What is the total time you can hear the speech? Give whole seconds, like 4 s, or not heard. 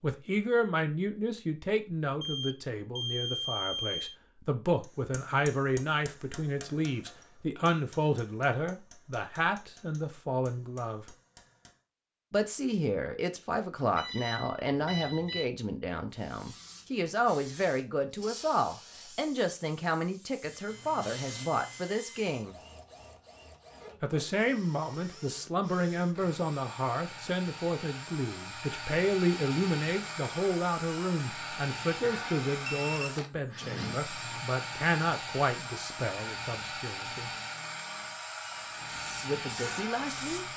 36 s.